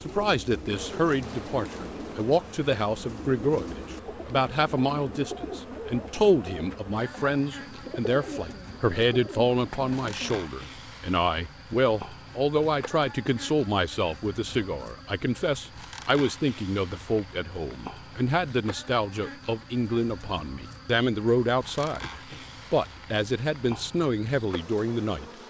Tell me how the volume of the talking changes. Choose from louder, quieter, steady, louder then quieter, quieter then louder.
steady.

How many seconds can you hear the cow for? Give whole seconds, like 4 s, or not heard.
not heard.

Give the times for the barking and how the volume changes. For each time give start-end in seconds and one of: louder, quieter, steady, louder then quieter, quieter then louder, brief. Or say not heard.
not heard.